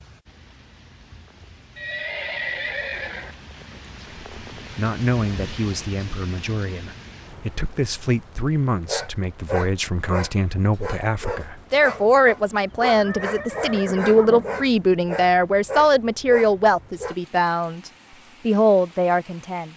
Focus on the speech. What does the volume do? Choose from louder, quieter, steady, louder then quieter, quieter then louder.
louder.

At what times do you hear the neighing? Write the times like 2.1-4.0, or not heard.
1.8-3.4, 12.9-14.7.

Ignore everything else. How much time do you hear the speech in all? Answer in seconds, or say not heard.
16 s.